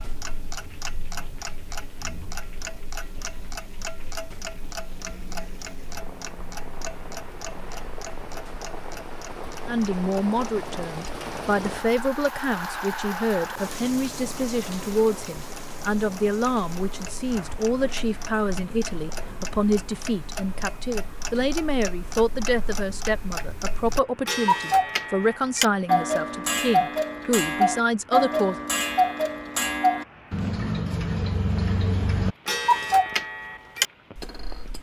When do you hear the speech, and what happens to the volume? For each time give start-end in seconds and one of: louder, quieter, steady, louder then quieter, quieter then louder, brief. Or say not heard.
9.7-28.6 steady.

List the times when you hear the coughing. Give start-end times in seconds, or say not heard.
not heard.